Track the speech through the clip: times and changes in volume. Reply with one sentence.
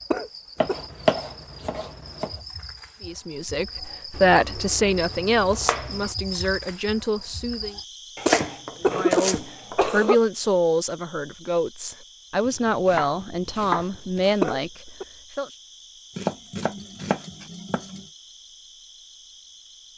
The speech can be heard from 3.0 to 7.8 s, getting quieter; and from 8.8 to 15.5 s, at a steady volume.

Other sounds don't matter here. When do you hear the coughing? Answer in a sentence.
The coughing can be heard from 0.1 to 0.8 s, from 8.2 to 10.2 s and from 14.4 to 15.1 s.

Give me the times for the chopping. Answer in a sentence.
You can hear the chopping from 0.6 to 2.4 s, from 4.1 to 6.2 s, from 8.2 to 9.8 s, from 12.4 to 14.4 s and from 16.1 to 18.1 s.